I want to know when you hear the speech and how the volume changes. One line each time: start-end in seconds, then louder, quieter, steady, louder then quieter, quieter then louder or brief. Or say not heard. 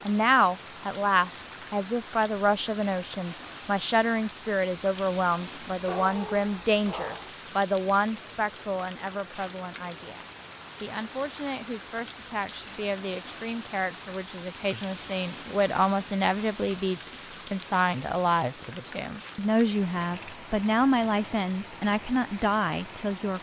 0.1-23.3 quieter then louder.